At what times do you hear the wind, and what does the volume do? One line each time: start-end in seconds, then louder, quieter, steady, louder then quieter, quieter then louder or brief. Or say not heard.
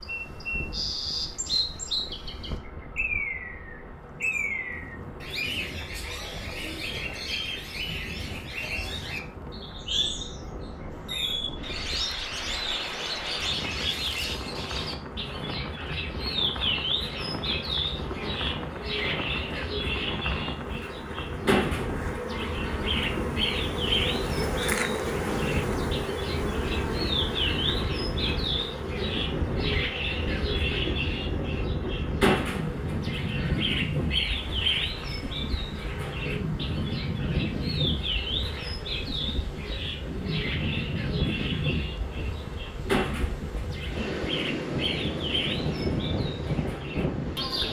0.1-47.6 louder.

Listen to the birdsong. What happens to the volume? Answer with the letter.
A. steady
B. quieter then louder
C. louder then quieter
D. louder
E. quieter
A.